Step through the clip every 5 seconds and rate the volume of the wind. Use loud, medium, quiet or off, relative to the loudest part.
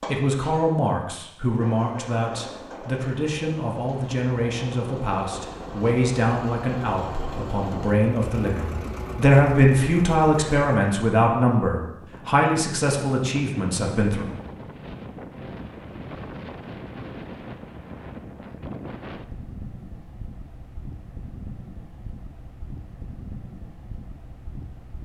off, off, loud, loud, medium.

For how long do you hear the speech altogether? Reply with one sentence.
The speech can be heard for 14 seconds in total.